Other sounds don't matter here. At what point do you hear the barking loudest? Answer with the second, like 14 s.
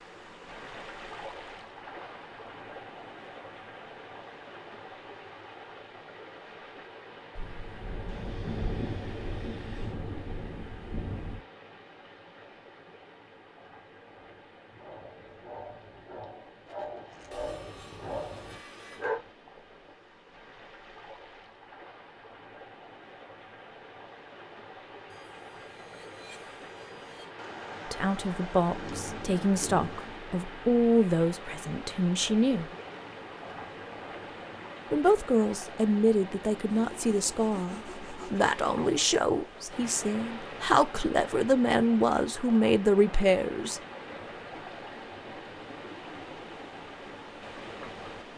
19 s.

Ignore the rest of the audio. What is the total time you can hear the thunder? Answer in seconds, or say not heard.
7 s.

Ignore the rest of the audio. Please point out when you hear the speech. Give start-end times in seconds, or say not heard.
27.9-32.6, 34.9-43.8.